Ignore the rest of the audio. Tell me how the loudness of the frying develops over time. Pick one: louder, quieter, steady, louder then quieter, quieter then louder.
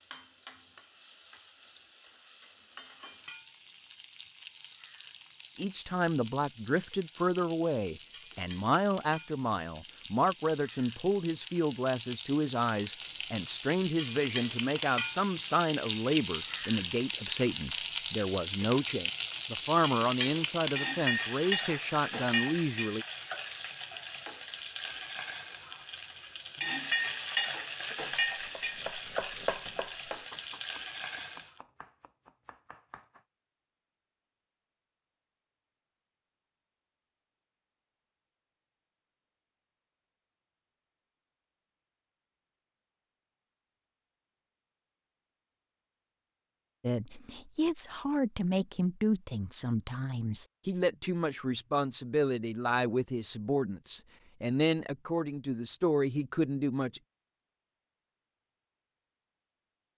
louder.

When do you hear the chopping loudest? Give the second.
29 s.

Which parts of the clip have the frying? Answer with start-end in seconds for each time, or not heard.
0.0-31.6.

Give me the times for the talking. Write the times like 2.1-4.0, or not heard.
5.5-23.1, 46.8-57.0.